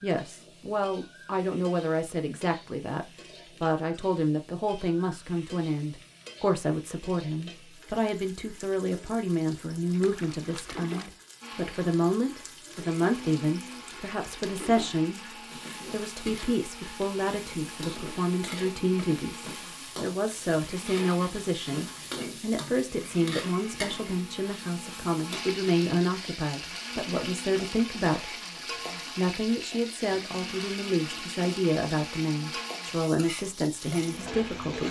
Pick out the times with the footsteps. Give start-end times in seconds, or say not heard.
not heard.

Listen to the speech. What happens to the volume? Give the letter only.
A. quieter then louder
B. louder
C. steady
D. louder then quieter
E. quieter
C.